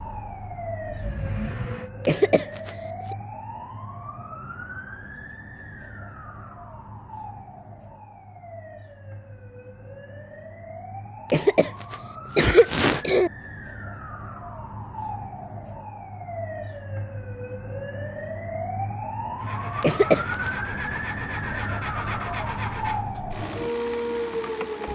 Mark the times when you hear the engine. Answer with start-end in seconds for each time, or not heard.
0.0-1.9, 19.4-24.8.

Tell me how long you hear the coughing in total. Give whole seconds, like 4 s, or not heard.
4 s.